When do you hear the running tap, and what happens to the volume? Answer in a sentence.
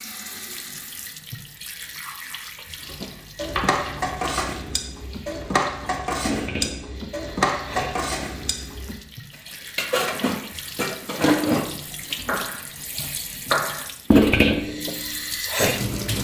The running tap can be heard from 0.0 to 16.1 s, getting louder.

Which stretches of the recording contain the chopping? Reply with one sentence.
You can hear the chopping from 2.9 to 4.5 s and from 12.2 to 13.8 s.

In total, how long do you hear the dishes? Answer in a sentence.
You can hear the dishes for 10 seconds altogether.